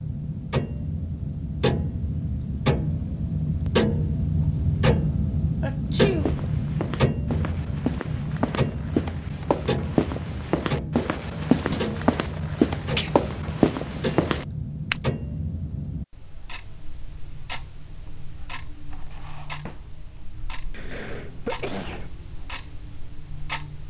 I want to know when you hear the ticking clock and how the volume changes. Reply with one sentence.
You can hear the ticking clock from 0.0 to 23.8 s, getting quieter.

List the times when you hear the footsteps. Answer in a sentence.
The footsteps can be heard from 5.9 to 15.0 s.